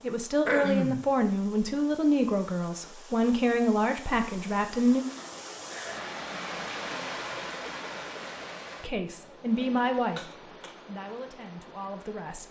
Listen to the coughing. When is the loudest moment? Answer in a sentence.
The volume of the coughing peaks at 1 second.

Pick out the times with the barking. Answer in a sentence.
You can't hear the barking here.